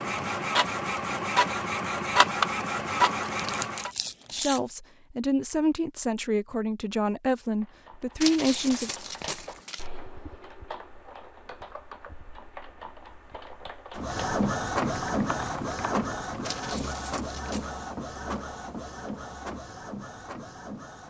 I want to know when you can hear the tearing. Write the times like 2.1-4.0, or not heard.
3.3-4.7, 8.2-9.8, 16.4-17.8.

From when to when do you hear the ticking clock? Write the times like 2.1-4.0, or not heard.
not heard.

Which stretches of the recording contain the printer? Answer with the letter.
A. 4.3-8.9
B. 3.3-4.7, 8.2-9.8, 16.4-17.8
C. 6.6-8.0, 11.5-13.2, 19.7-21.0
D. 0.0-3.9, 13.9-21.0
D.